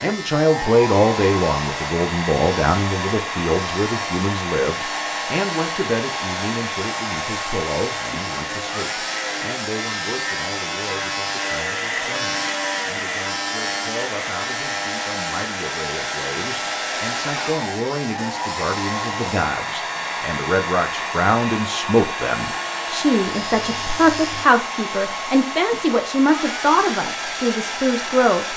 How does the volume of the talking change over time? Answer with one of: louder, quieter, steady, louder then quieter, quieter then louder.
quieter then louder.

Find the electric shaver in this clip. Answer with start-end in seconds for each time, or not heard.
0.0-24.4.